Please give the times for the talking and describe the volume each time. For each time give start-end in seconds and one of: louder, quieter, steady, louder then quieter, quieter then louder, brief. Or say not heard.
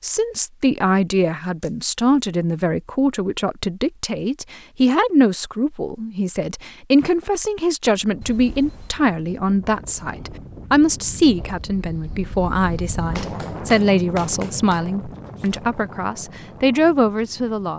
0.0-17.7 steady.